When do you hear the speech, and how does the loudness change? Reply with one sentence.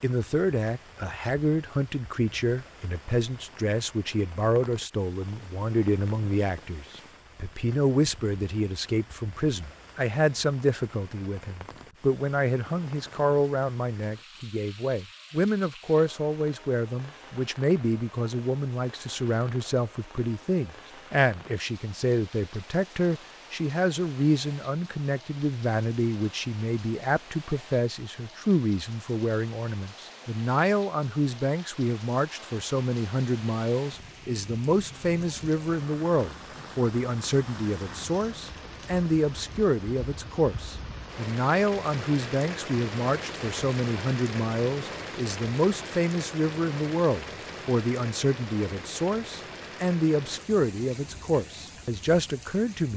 The speech can be heard from 0.0 to 52.9 s, at a steady volume.